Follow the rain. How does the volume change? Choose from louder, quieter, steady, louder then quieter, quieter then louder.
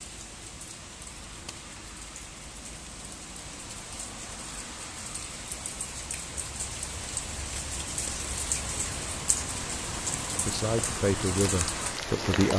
louder.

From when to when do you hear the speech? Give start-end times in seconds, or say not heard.
10.4-12.5.